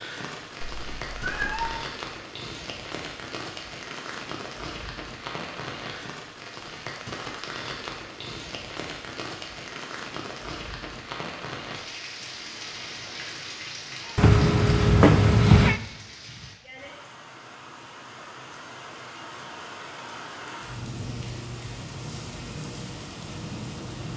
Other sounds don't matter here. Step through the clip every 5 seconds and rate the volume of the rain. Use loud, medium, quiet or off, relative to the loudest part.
loud, loud, loud, medium, loud.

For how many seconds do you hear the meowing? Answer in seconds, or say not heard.
3 s.